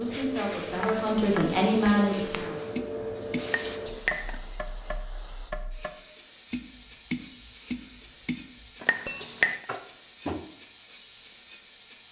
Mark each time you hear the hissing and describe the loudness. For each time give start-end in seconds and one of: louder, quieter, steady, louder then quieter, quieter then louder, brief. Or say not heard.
0.0-12.0 quieter.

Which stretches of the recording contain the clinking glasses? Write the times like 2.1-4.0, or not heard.
3.5-4.5, 8.8-9.7.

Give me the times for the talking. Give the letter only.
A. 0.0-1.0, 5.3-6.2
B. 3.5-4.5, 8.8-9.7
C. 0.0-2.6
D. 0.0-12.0
C.